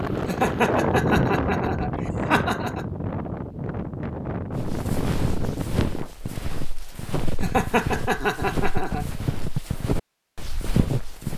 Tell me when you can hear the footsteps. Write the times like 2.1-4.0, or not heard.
4.5-11.3.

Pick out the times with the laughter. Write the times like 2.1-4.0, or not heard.
0.2-2.9, 7.4-9.1.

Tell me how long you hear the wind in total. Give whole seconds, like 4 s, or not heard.
6 s.